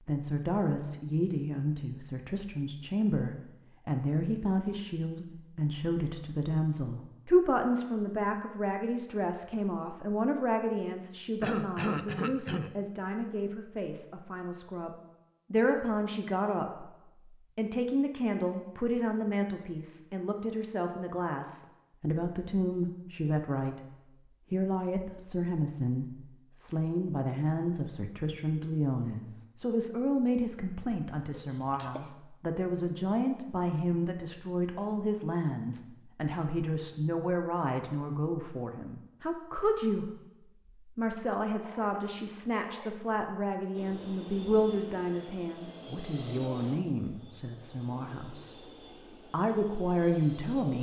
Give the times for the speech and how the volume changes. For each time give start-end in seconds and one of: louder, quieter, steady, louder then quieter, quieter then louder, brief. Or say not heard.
0.0-50.7 steady.